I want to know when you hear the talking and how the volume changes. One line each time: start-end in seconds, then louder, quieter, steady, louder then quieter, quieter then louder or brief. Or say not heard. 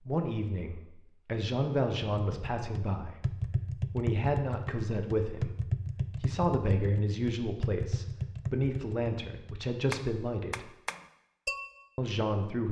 0.0-10.7 steady
11.9-12.6 brief.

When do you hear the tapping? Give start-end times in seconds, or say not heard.
2.1-11.8.